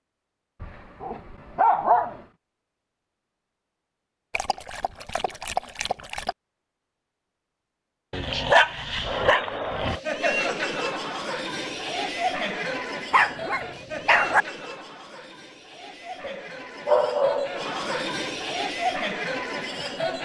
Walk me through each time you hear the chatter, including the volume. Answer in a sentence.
The chatter can be heard from 9.0 to 20.2 s, getting quieter then louder.